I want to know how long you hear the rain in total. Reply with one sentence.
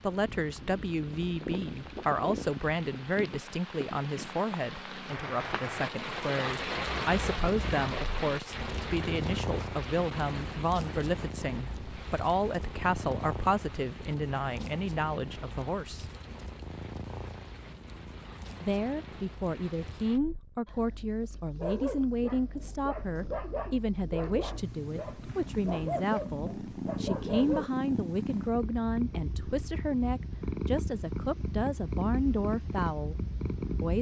The rain can be heard for 20 seconds in total.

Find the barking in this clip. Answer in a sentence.
The barking can be heard from 21.6 to 27.7 s.